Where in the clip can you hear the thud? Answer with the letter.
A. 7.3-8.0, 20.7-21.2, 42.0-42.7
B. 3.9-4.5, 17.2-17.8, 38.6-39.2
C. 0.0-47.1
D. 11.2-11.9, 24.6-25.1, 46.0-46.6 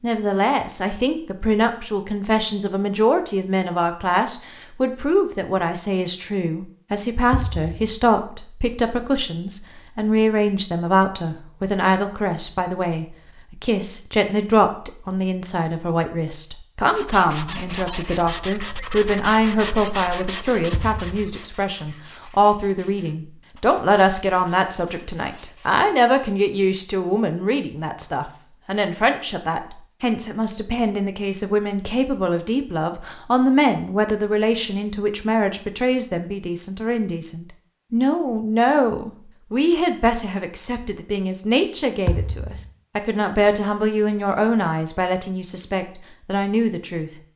A.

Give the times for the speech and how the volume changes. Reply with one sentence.
You can hear the speech from 0.0 to 47.1 s, at a steady volume.